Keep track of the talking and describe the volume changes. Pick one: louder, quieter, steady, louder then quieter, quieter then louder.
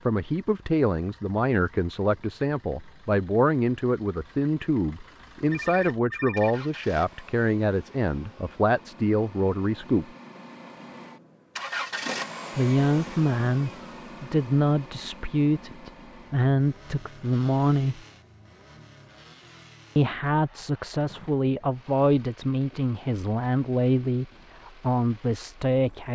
steady.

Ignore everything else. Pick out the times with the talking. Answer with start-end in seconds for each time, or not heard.
0.1-10.1, 12.6-18.0, 19.9-26.0.